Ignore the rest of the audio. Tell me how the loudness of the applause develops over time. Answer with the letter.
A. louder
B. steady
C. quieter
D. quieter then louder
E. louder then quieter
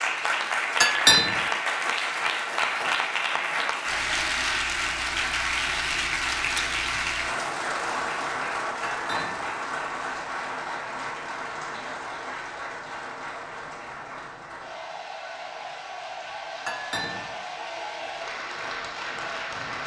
C.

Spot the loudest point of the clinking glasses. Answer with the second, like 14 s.
1 s.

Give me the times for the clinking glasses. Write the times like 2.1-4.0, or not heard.
0.8-1.4, 8.8-9.5, 16.6-17.3.